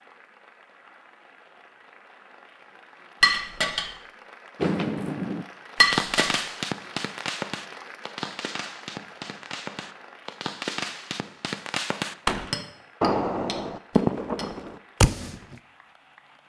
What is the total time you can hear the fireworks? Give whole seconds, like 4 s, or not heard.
11 s.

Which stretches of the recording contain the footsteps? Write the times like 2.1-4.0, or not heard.
not heard.